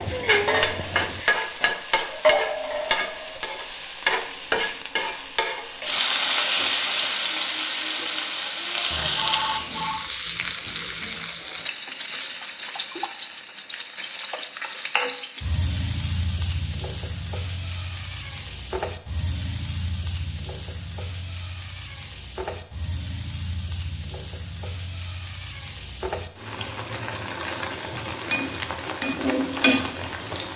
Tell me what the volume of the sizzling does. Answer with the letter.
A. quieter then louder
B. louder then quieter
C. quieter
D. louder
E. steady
A.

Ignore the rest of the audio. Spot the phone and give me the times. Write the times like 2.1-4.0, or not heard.
8.9-10.1.